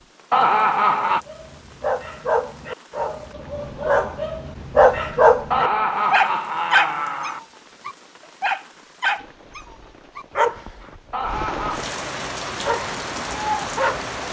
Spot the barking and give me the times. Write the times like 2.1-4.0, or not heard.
1.1-10.9, 12.6-14.2.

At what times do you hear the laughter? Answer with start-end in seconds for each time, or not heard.
0.3-1.2, 5.5-7.4, 11.1-11.8.